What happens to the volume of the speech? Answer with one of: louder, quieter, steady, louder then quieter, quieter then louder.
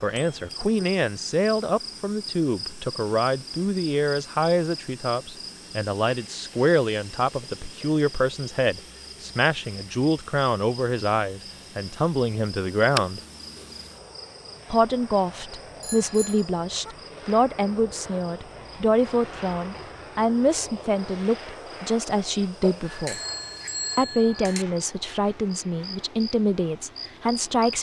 steady.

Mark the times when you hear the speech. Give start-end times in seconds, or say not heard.
0.0-13.2, 14.7-23.2, 23.9-27.7.